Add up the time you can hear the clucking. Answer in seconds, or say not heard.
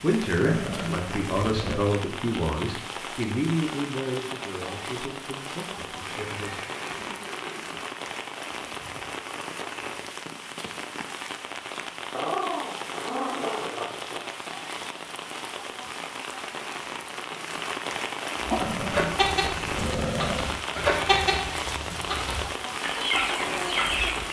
6 s.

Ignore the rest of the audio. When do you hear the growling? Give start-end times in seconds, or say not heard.
0.5-1.9, 12.1-14.2, 18.6-20.4.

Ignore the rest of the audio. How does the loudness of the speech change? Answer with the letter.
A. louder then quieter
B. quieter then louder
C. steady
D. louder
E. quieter
E.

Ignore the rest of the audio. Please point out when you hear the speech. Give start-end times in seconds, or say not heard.
0.0-6.8.